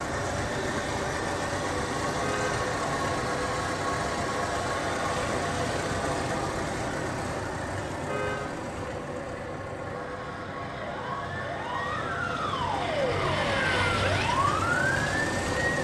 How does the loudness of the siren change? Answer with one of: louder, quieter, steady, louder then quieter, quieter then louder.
louder.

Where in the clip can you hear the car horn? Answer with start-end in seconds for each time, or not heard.
2.2-2.7, 8.1-8.6.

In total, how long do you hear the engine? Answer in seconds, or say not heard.
16 s.